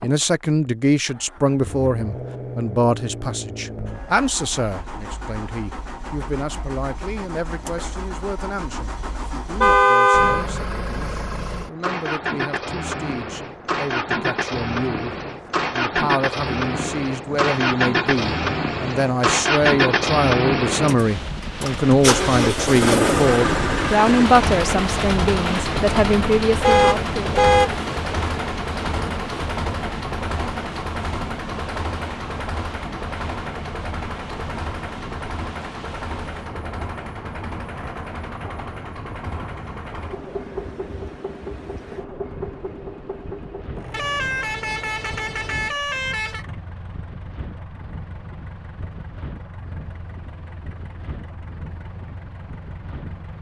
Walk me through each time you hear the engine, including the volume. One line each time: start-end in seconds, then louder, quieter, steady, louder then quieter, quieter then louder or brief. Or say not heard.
0.0-53.3 louder then quieter.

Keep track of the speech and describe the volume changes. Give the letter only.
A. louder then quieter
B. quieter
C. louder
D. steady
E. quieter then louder
E.